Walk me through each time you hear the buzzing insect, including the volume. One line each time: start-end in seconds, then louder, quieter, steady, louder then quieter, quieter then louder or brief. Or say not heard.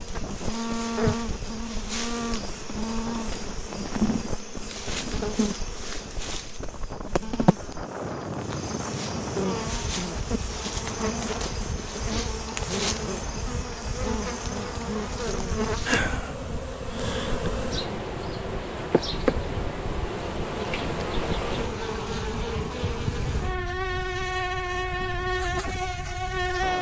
0.0-26.7 steady.